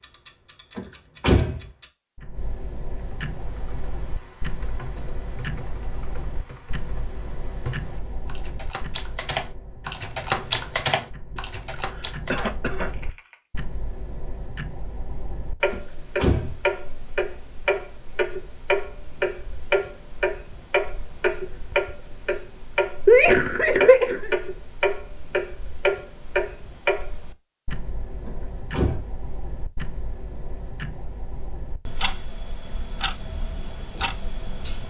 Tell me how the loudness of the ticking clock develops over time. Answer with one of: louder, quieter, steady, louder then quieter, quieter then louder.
louder then quieter.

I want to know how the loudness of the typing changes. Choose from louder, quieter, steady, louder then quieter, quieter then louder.
louder then quieter.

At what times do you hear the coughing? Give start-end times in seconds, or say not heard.
11.3-12.9, 23.1-24.3.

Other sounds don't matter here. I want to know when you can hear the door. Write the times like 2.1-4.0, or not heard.
0.8-1.6, 15.7-16.6, 28.2-29.1.